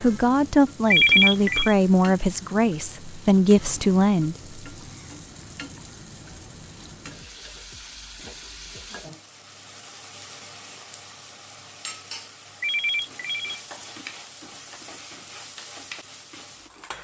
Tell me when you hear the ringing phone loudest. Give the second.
1 s.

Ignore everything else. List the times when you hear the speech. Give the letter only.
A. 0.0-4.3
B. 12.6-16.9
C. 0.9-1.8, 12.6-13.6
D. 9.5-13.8
A.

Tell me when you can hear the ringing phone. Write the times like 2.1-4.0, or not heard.
0.9-1.8, 12.6-13.6.